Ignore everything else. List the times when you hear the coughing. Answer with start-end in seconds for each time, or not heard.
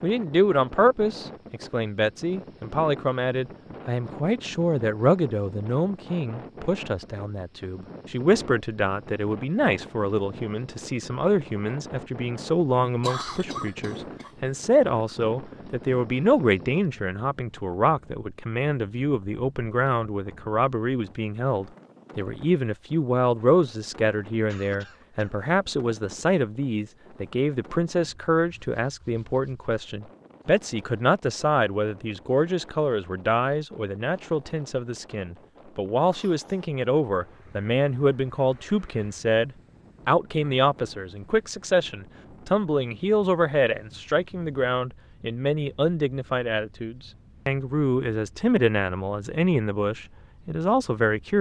12.8-14.3, 24.4-25.5, 36.1-36.7.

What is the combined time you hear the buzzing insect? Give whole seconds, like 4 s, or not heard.
not heard.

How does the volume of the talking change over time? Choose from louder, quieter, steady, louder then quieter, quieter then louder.
steady.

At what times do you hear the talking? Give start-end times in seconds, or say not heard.
0.0-51.3.